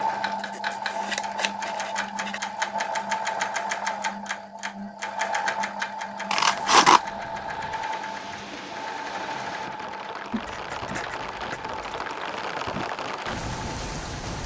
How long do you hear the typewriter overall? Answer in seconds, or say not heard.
not heard.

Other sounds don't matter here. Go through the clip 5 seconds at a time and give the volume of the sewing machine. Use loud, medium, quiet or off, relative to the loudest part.
loud, loud, medium.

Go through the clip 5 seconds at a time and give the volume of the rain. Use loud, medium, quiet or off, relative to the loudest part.
off, medium, loud.